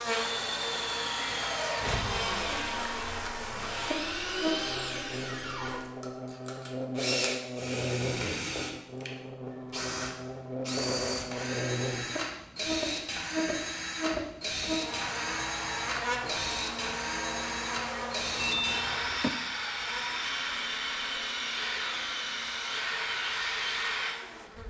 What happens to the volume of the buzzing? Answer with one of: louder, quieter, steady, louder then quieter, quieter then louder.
quieter.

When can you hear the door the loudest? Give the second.
19 s.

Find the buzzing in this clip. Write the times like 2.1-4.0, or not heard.
0.0-24.6.